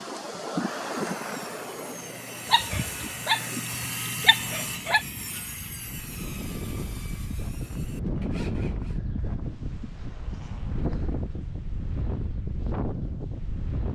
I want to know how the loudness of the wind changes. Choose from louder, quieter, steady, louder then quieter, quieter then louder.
quieter then louder.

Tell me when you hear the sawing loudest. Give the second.
4 s.